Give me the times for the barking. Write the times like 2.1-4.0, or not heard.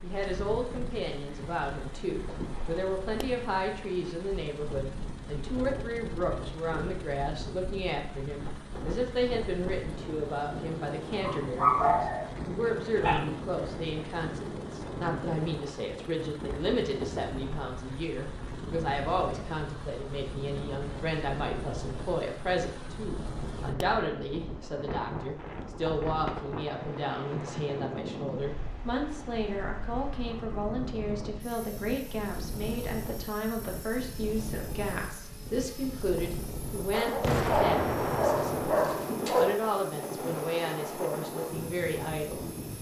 11.2-13.2, 36.9-39.5.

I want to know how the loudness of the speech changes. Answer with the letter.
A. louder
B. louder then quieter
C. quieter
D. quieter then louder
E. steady
E.